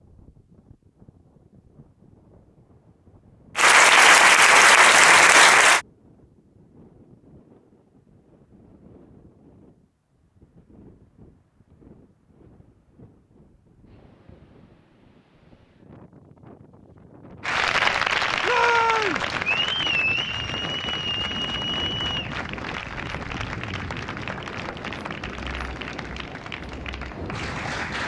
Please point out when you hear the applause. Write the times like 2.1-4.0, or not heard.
3.5-5.8, 17.4-28.0.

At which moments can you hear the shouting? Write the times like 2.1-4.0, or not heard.
18.4-19.2.